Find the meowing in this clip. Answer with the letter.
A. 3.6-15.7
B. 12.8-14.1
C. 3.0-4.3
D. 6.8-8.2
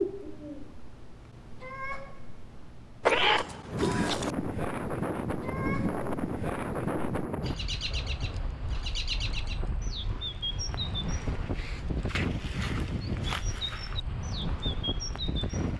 C.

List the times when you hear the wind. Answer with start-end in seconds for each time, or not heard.
3.6-15.7.